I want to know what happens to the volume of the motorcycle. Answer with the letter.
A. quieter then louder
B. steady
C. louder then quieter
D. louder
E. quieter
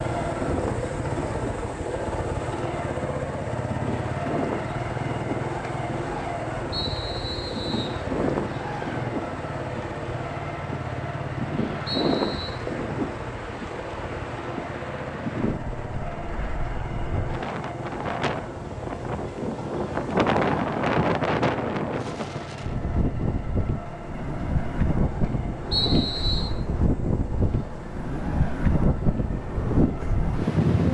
E.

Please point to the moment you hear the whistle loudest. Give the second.
26 s.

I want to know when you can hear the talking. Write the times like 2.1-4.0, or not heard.
not heard.